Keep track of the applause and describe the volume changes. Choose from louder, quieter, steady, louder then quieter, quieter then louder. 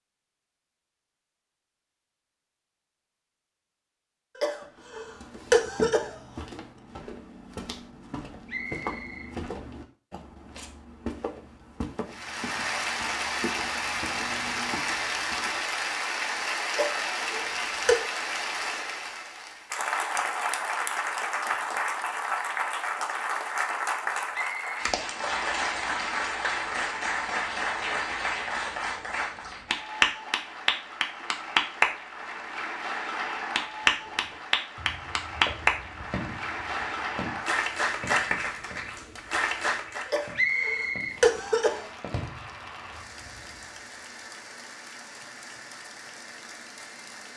quieter.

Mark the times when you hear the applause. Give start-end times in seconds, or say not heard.
12.1-47.3.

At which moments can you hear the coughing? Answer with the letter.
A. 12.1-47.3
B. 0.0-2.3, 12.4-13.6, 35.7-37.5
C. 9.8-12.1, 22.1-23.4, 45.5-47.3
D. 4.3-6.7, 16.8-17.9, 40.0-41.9
D.